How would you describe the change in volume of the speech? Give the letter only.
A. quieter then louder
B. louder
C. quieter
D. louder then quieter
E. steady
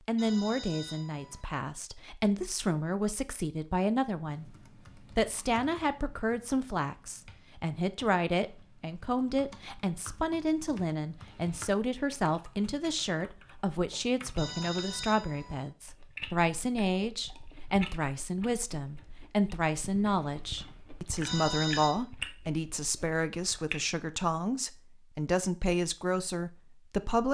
E.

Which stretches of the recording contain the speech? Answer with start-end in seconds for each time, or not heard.
0.1-27.2.